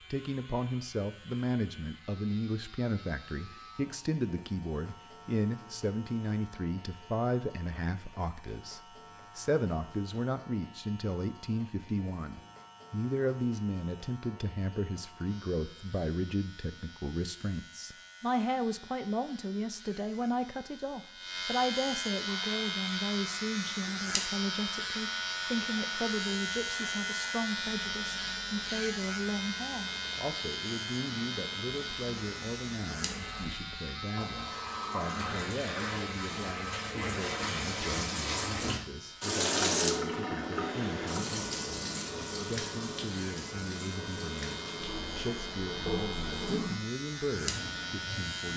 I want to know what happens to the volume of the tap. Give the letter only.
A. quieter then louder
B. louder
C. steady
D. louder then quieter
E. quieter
D.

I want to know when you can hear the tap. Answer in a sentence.
You can hear the tap from 22.3 to 48.5 s.